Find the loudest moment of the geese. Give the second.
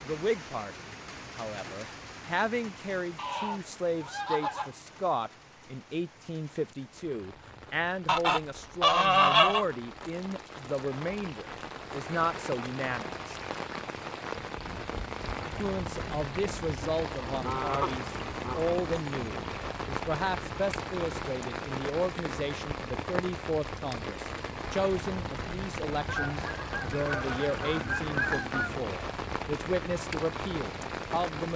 9 s.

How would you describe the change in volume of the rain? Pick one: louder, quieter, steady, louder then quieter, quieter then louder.
louder.